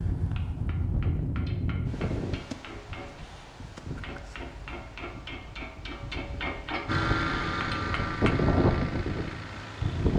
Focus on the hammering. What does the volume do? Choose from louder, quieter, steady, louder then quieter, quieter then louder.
louder.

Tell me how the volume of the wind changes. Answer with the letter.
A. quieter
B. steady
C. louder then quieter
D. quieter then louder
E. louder
D.